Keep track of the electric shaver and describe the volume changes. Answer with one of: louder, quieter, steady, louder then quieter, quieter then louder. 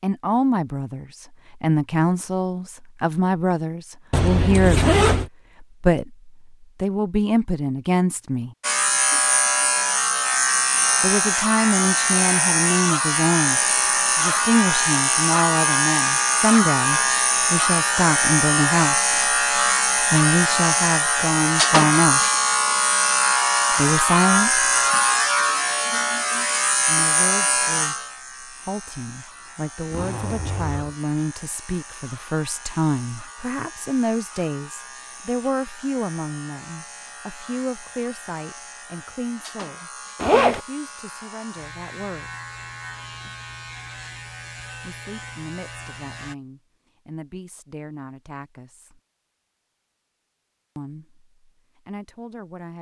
quieter.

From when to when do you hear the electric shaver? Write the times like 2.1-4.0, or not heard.
8.6-46.4.